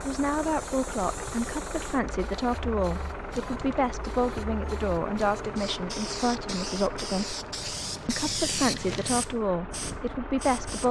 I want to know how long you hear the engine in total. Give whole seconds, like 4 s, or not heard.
11 s.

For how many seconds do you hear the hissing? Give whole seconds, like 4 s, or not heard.
11 s.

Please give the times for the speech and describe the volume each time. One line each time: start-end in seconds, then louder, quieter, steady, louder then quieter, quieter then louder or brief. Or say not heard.
0.0-7.3 steady
8.1-10.8 brief.